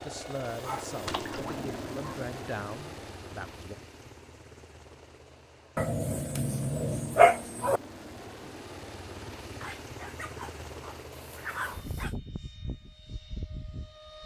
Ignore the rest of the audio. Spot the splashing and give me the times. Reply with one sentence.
The splashing can be heard from 1.1 to 1.6 s.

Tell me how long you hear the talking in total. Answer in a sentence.
You can hear the talking for 4 seconds altogether.